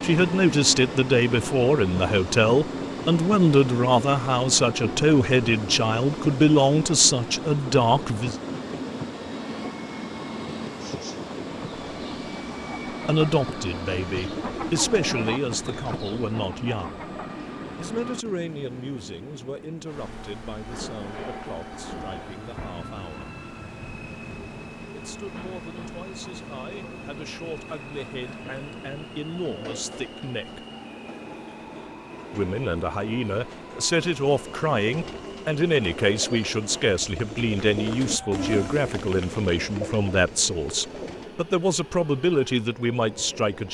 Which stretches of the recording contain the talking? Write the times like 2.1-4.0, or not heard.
0.0-8.3, 13.1-17.1, 17.8-23.4, 24.9-30.6, 32.3-43.7.